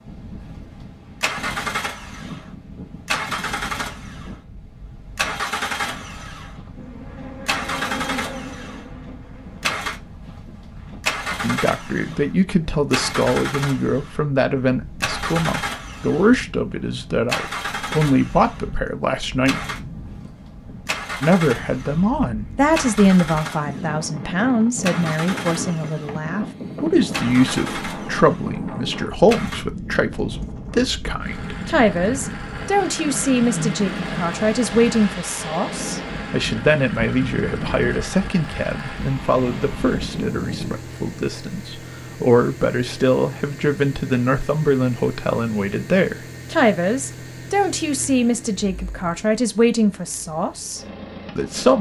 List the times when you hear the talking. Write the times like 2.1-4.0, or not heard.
11.4-19.6, 21.2-51.7.